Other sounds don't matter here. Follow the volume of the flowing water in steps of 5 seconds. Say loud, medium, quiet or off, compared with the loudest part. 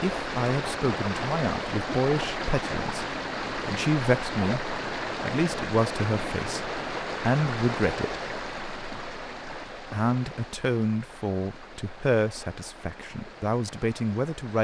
loud, loud, quiet.